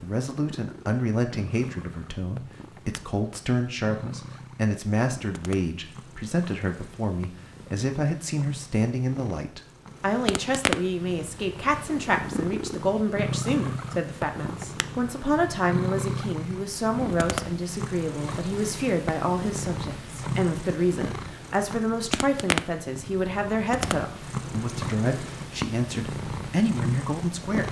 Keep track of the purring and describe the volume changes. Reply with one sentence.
The loudness of the purring goes up.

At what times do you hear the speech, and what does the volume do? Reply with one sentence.
You can hear the speech from 0.0 to 27.6 s, at a steady volume.